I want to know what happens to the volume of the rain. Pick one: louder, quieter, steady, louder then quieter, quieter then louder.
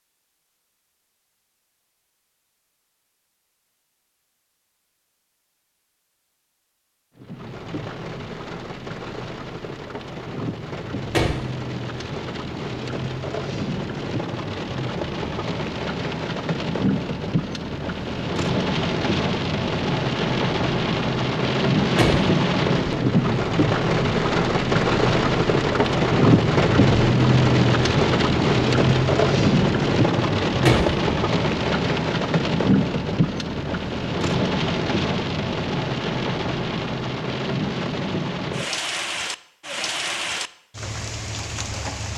louder then quieter.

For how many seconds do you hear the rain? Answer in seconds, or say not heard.
35 s.